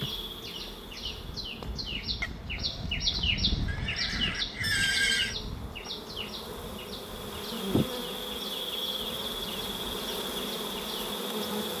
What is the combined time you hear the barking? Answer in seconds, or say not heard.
not heard.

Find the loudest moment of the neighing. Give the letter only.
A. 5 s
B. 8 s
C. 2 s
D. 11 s
A.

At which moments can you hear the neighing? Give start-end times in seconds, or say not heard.
3.6-5.3.